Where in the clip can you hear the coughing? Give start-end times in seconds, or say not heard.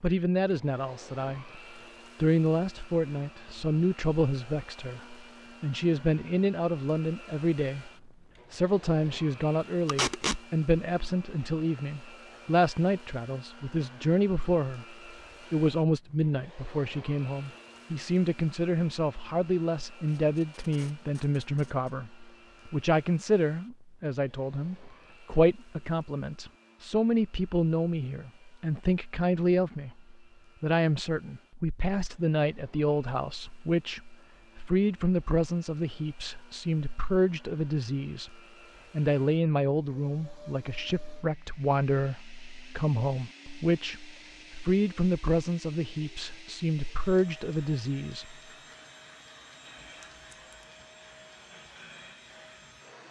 not heard.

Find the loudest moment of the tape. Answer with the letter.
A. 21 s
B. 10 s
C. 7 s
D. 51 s
B.